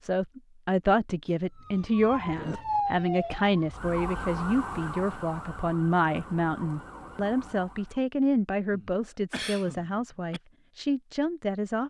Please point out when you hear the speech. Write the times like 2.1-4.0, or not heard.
0.0-11.8.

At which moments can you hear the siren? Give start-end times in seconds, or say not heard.
1.6-8.0.